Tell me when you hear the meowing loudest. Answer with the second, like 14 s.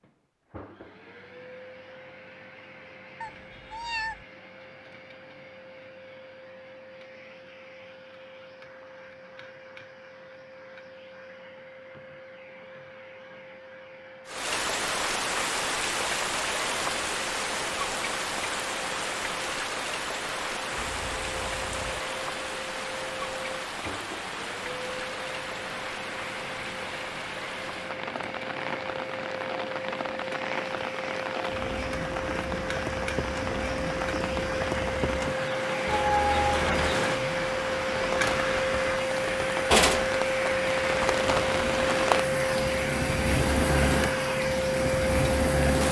36 s.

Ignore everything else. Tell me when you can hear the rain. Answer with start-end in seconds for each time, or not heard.
14.2-45.8.